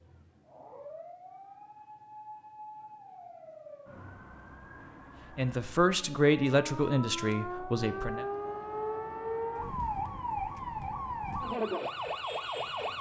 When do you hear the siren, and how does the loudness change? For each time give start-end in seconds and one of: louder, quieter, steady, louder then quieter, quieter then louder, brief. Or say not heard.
0.0-12.9 louder.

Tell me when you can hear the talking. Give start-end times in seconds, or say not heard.
5.3-8.2.